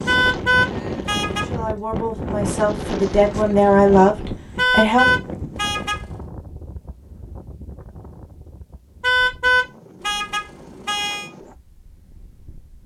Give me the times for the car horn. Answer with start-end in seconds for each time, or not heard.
0.1-1.4, 4.5-6.0, 9.0-11.3.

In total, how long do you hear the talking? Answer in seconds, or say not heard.
4 s.